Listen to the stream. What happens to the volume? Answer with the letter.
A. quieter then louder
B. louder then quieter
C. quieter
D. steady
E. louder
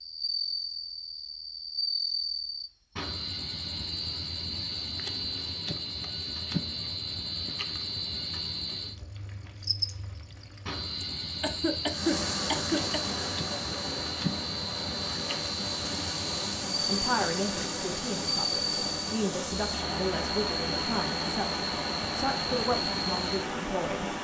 D.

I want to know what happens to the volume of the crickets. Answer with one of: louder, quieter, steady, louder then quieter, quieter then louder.
steady.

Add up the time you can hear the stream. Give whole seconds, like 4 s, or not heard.
12 s.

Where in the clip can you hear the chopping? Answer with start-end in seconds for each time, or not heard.
not heard.